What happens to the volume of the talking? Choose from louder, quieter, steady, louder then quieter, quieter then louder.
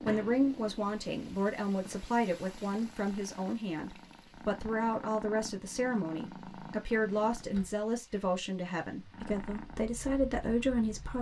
steady.